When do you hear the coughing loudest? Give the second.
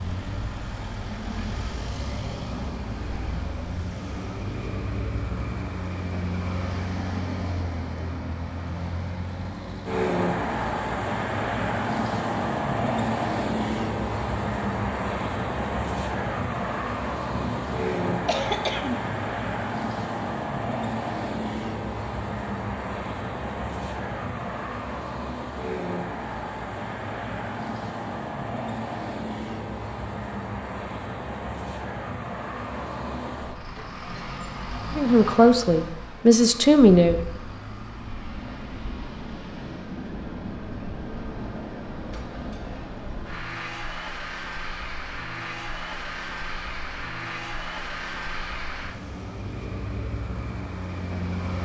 19 s.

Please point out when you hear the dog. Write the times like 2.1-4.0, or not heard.
not heard.